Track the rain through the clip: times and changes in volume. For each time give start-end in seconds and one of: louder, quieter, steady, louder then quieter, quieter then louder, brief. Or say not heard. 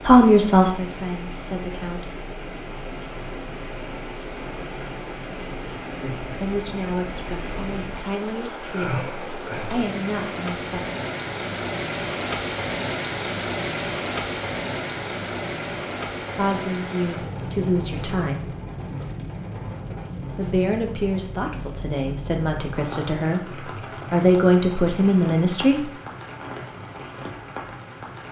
0.0-28.2 louder then quieter.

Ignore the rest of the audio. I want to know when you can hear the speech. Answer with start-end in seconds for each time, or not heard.
0.0-2.2, 6.4-10.9, 16.4-18.6, 20.4-25.9.